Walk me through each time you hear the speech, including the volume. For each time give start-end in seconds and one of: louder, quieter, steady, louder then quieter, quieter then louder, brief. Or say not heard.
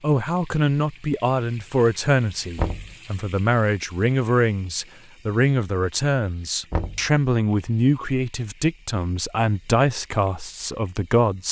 0.0-11.4 steady.